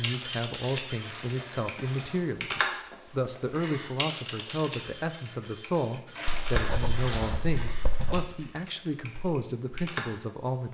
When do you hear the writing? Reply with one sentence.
You can hear the writing from 6.2 to 8.3 s.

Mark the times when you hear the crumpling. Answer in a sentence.
You can hear the crumpling from 1.0 to 2.5 s and from 6.2 to 8.2 s.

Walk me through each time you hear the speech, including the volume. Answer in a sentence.
The speech can be heard from 0.0 to 10.6 s, at a steady volume.